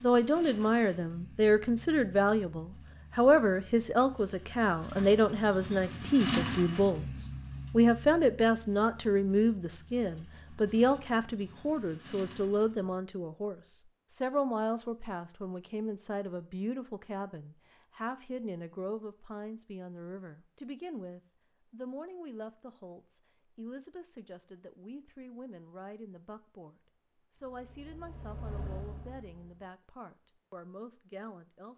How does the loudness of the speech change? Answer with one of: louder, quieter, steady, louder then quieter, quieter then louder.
quieter.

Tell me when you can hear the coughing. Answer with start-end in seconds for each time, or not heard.
not heard.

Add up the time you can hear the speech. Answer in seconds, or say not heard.
32 s.